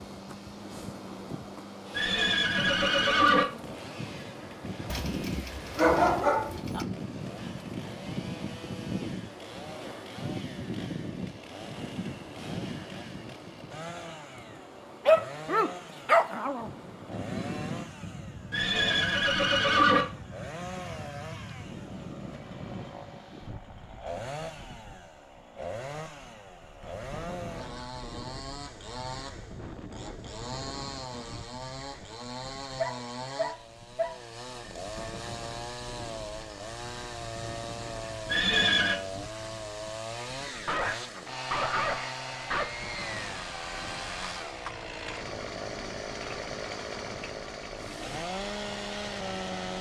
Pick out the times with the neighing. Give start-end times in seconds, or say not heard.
1.9-3.5, 18.5-20.1, 38.2-39.0.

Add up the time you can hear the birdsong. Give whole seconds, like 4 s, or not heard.
not heard.